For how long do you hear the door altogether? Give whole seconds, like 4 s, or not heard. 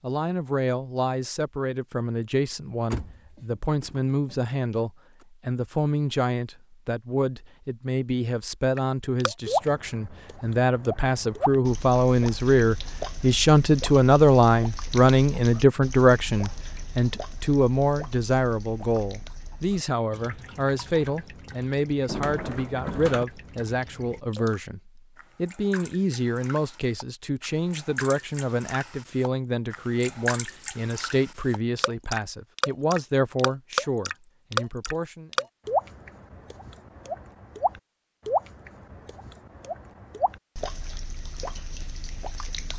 3 s.